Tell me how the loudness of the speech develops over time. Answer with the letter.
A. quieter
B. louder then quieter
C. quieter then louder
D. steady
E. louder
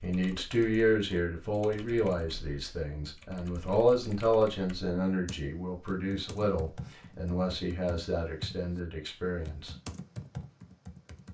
A.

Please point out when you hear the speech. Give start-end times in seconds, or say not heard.
0.0-9.8.